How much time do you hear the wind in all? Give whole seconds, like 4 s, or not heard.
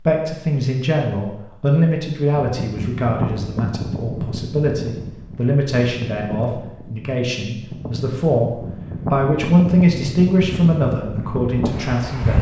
10 s.